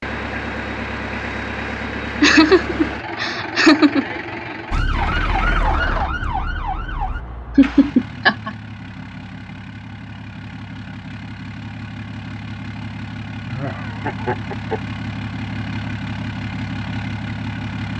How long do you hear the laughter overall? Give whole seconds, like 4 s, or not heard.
4 s.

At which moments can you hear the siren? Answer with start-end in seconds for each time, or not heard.
4.7-7.2.